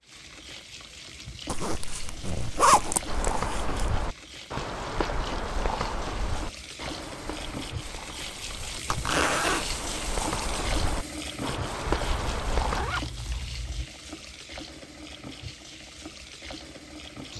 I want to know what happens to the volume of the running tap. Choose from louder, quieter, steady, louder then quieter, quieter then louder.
louder then quieter.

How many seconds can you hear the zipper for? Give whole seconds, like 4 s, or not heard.
5 s.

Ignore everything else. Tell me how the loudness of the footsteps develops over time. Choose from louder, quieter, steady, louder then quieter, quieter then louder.
quieter then louder.